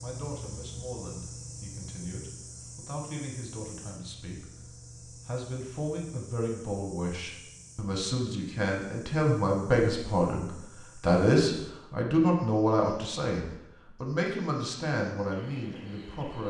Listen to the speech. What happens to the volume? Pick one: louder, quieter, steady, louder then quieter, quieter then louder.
louder then quieter.